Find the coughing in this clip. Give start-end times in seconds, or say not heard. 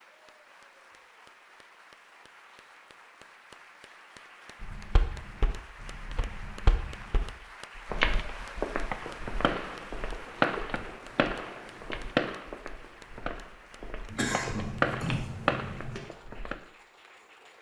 14.1-16.0.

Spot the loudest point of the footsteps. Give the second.
8 s.